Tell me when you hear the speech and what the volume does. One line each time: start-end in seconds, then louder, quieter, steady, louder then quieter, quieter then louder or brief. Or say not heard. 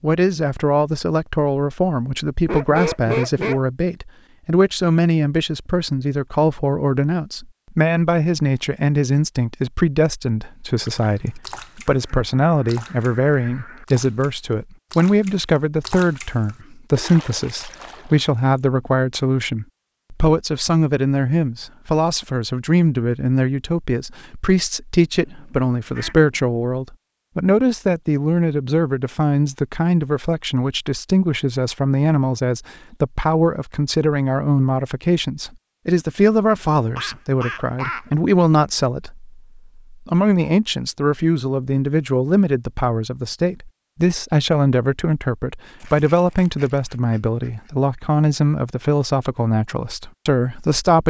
0.0-51.0 steady.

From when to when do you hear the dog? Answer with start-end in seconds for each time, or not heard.
not heard.